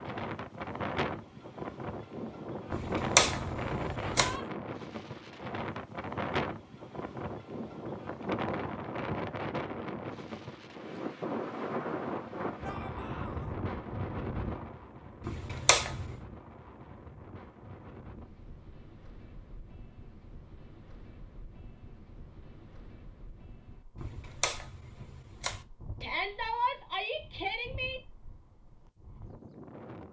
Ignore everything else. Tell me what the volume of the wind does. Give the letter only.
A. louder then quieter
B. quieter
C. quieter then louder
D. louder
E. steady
B.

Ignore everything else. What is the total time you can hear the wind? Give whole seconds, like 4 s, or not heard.
30 s.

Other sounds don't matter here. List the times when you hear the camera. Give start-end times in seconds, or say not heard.
2.7-4.3, 15.2-16.1, 23.9-25.6.